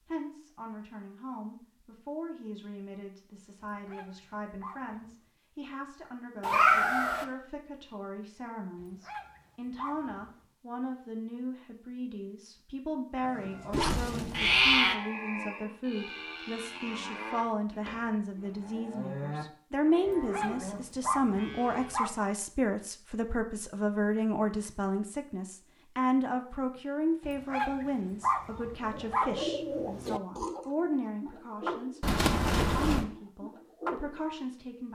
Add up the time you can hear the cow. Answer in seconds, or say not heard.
9 s.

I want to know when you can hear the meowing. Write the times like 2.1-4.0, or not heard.
6.4-7.2, 13.7-14.9, 32.0-33.0.